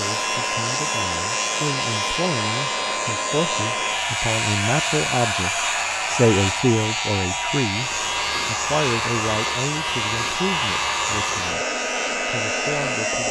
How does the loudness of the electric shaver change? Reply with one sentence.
The loudness of the electric shaver stays about the same.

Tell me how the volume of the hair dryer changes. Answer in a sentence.
The volume of the hair dryer stays about the same.